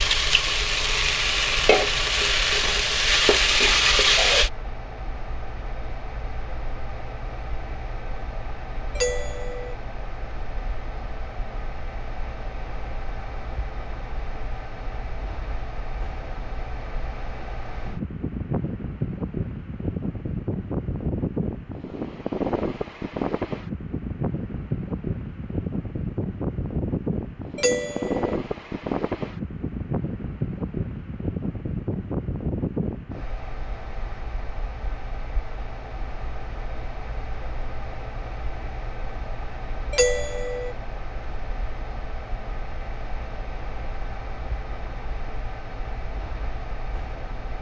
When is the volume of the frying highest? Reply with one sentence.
The volume of the frying peaks at 4 seconds.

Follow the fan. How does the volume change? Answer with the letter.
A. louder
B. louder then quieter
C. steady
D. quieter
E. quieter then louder
B.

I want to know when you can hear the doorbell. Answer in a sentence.
You can hear the doorbell from 8.9 to 9.8 s, from 27.6 to 28.4 s and from 39.9 to 40.8 s.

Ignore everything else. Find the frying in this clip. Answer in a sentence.
You can hear the frying from 0.0 to 4.5 s.